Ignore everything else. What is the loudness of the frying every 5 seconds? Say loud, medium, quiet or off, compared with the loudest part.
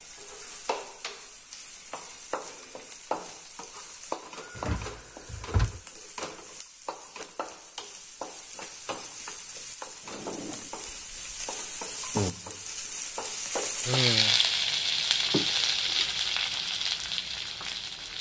medium, quiet, loud, loud.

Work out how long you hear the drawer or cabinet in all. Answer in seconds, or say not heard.
2 s.